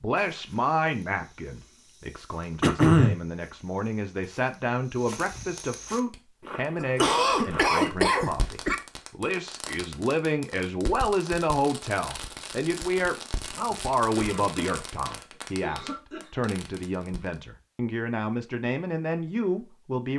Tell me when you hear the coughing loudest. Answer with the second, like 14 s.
3 s.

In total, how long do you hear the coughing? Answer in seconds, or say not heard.
5 s.